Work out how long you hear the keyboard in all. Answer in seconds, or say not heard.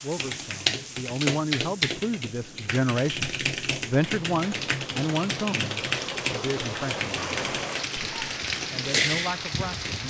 10 s.